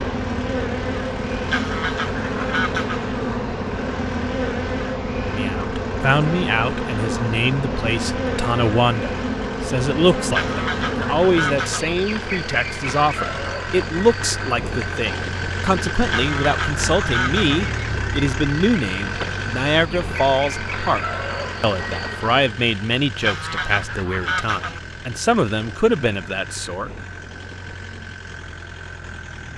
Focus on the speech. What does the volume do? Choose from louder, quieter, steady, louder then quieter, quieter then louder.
steady.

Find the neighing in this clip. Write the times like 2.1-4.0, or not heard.
not heard.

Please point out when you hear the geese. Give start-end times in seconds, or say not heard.
1.4-3.0, 10.3-11.9, 16.1-17.6, 23.2-24.8.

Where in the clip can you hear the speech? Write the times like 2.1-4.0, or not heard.
5.2-26.9.